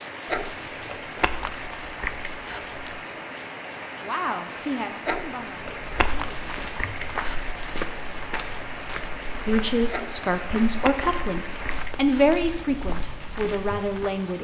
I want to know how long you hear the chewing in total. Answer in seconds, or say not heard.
8 s.